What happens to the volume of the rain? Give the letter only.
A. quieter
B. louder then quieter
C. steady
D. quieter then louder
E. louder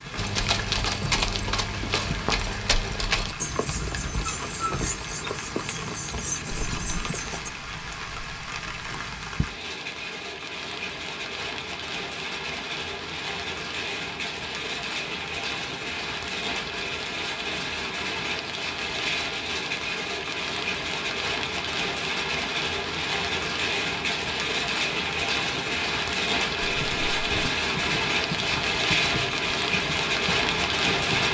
E.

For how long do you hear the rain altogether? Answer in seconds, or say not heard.
31 s.